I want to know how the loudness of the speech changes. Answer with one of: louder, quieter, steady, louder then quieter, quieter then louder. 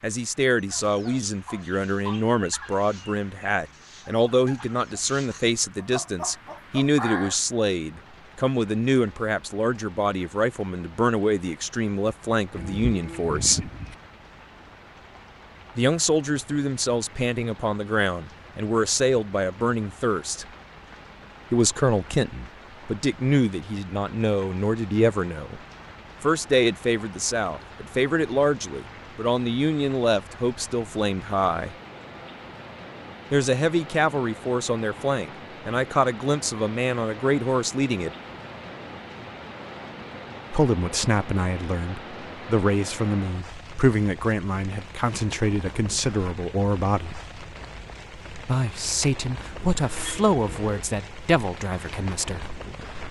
steady.